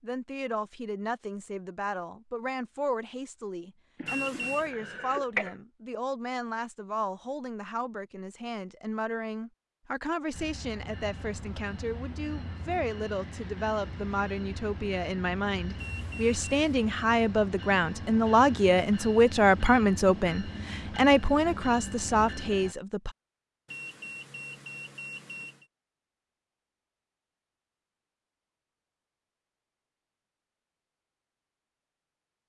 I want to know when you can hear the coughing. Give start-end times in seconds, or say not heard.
4.0-5.5.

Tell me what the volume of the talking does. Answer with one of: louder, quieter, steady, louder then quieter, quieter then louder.
louder.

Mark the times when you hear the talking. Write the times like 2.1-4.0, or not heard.
0.0-23.1.